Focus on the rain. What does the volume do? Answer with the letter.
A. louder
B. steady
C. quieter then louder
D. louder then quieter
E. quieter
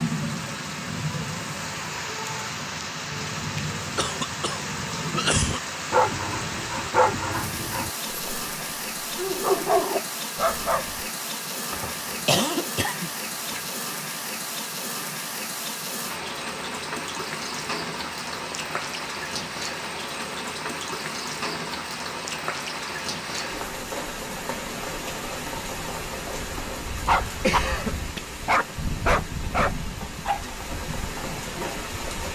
B.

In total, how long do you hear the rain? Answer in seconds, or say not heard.
32 s.